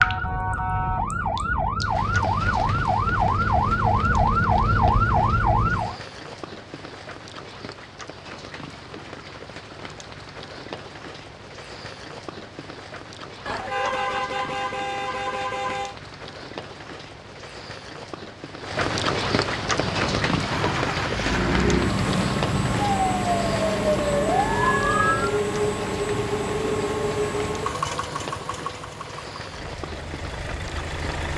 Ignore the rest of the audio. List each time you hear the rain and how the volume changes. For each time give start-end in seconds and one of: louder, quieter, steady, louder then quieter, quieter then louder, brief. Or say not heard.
0.0-31.3 louder then quieter.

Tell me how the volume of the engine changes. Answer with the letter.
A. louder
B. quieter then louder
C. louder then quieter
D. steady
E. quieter
E.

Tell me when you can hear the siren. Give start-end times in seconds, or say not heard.
0.0-6.0, 19.6-25.4.